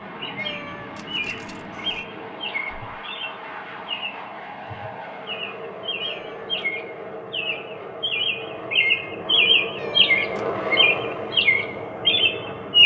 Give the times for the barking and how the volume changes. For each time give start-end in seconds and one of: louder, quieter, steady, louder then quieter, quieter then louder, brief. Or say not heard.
not heard.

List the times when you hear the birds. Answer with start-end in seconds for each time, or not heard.
0.2-12.8.